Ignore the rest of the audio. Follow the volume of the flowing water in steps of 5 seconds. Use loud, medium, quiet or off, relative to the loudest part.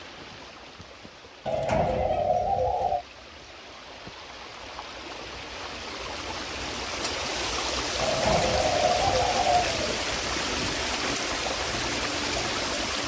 quiet, loud, loud.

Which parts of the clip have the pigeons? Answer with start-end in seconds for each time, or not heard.
1.4-3.0, 8.0-9.9.